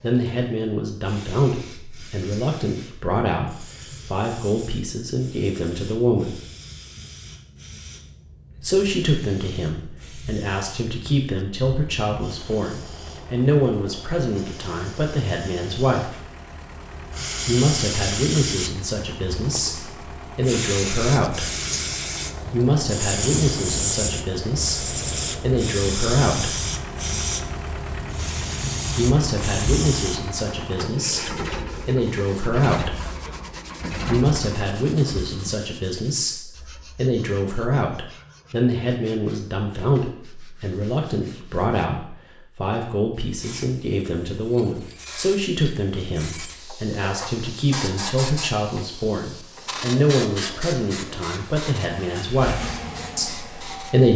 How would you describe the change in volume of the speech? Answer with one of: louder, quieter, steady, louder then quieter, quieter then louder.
steady.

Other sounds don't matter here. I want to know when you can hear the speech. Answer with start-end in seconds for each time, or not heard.
0.0-6.4, 8.6-16.2, 17.4-21.4, 22.5-26.6, 28.9-33.0, 34.0-54.1.